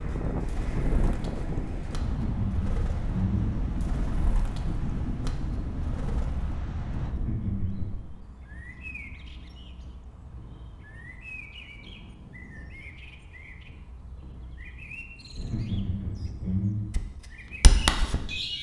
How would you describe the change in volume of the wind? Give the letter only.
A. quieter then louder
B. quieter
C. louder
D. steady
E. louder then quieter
B.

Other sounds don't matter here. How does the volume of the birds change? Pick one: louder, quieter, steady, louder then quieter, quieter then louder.
louder.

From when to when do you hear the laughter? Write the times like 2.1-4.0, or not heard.
2.0-3.5, 7.0-8.0, 15.3-16.9.